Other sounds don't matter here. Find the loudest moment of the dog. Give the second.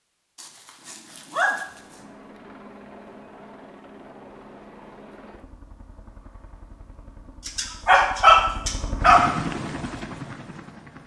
8 s.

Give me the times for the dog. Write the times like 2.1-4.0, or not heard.
0.3-1.6, 7.5-9.3.